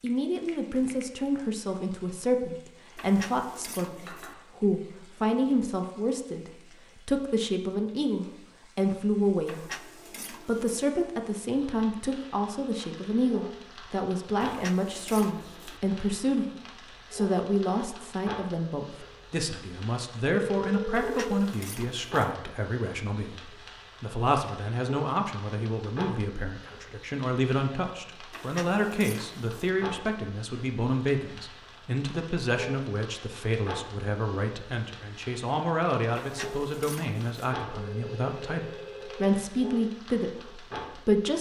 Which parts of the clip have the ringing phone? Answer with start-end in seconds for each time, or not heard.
0.1-1.1, 20.3-21.4, 37.7-39.4.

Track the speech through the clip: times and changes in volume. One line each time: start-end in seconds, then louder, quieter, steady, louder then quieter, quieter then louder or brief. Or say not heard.
0.0-41.3 steady.